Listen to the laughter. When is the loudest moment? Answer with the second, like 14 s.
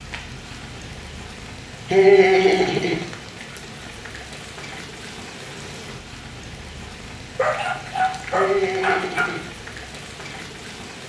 2 s.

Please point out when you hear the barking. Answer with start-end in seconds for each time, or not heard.
7.3-9.3.